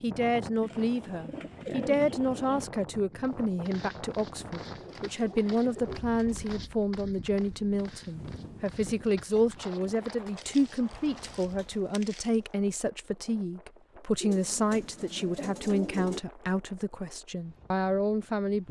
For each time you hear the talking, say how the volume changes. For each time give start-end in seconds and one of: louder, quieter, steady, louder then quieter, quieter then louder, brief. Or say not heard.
0.0-18.6 steady.